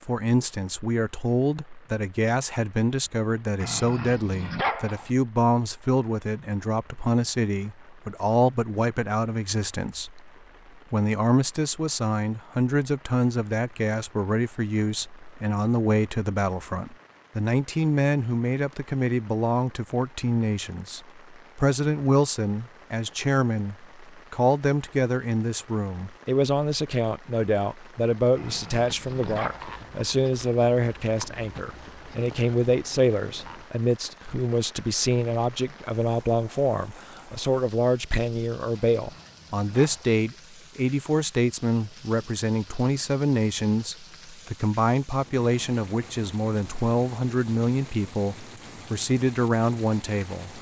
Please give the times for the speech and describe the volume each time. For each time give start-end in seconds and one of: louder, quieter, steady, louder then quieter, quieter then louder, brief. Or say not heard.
0.0-10.3 steady
10.9-50.5 steady.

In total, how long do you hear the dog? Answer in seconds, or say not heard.
4 s.